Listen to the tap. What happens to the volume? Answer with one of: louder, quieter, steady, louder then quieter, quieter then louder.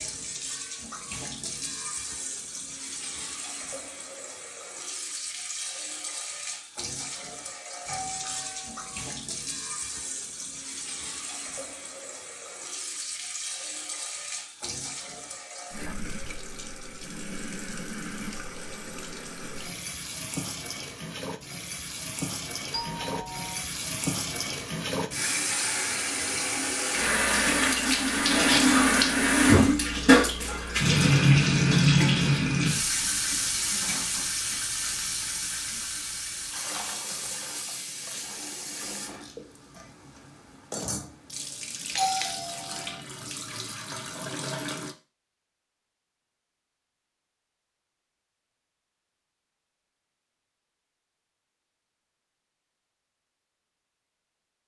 louder then quieter.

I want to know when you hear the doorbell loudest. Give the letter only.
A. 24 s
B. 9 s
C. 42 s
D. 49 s
C.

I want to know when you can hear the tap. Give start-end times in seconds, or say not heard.
0.0-45.0.